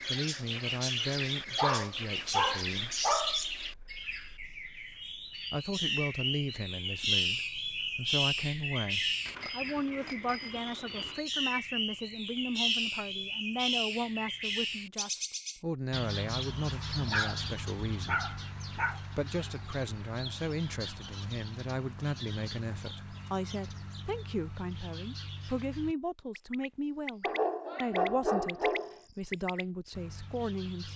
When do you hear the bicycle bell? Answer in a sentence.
The bicycle bell can be heard from 9.2 to 11.2 s.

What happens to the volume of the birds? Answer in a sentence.
The loudness of the birds goes down.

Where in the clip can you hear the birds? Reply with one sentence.
You can hear the birds from 0.0 to 30.9 s.